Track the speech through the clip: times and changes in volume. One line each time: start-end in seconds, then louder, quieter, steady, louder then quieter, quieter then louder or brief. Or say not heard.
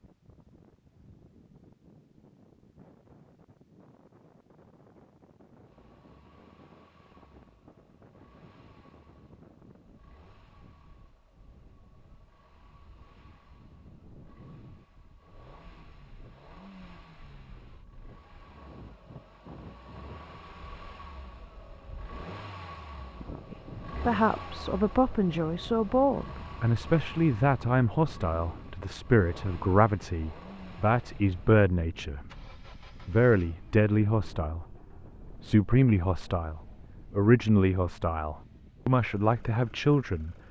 23.5-40.4 steady.